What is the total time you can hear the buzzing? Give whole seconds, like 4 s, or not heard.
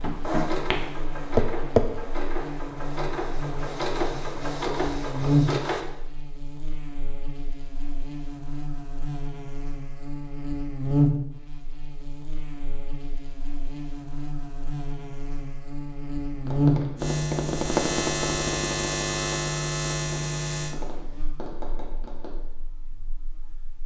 24 s.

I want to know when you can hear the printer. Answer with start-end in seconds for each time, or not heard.
0.0-5.8.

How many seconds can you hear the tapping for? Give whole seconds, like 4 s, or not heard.
8 s.